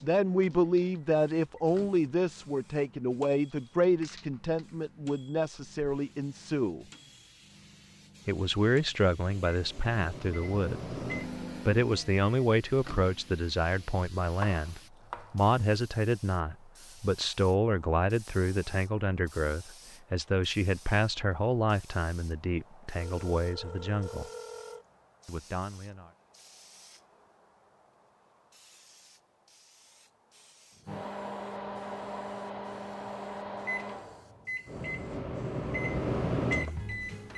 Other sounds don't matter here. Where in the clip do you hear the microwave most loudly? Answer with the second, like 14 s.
36 s.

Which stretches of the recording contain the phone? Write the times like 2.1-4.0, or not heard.
22.9-24.9.